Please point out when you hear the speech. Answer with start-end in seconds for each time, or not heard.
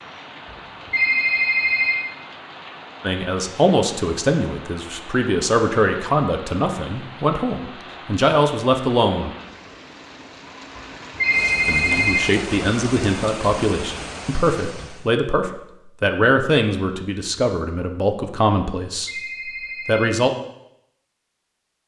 3.0-9.3, 11.7-19.1, 19.9-20.3.